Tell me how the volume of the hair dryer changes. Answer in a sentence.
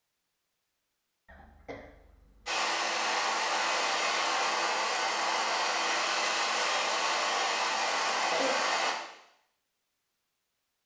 The loudness of the hair dryer stays about the same.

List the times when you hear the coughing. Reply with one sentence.
You can hear the coughing from 1.2 to 2.5 s and from 7.5 to 8.6 s.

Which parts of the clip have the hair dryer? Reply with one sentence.
You can hear the hair dryer from 2.5 to 8.9 s.